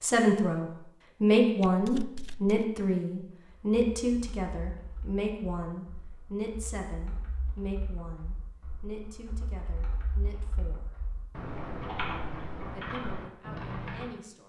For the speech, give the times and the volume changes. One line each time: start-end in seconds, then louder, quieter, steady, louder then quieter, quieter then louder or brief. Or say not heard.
0.0-10.8 quieter
12.7-14.4 brief.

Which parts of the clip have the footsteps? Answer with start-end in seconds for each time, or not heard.
not heard.